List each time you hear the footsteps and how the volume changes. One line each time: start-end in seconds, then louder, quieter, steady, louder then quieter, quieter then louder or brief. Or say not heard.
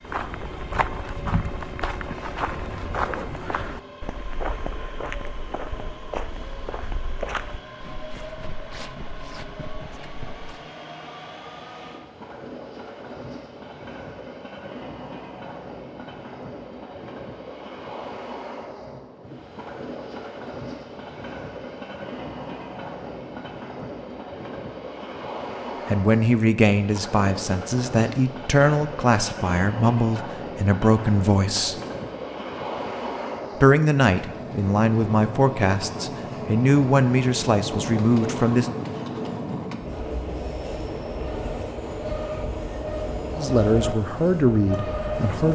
0.0-10.6 quieter.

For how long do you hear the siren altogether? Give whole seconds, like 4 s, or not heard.
not heard.